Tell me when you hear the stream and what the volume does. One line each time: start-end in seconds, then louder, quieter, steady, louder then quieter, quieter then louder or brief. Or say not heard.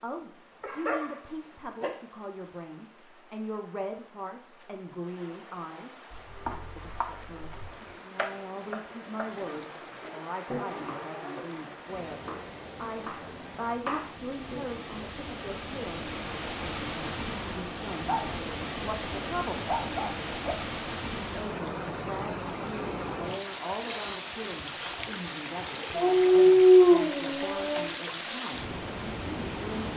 0.0-29.9 louder.